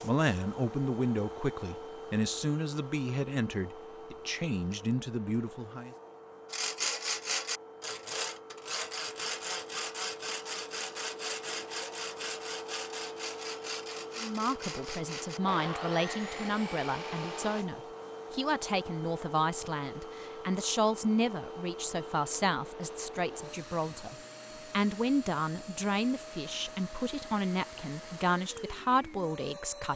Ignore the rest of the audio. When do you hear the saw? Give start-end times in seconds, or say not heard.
6.5-17.6.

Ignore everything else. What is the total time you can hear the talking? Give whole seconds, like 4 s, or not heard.
22 s.